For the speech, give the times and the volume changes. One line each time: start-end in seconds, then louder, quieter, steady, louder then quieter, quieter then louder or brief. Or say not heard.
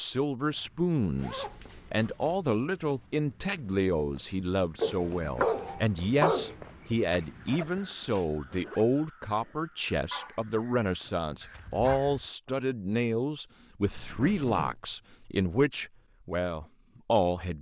0.0-17.5 steady.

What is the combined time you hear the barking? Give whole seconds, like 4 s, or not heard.
4 s.